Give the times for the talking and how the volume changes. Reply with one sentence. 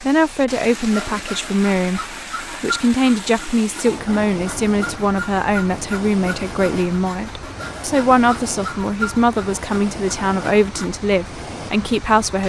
The talking can be heard from 0.0 to 12.4 s, at a steady volume.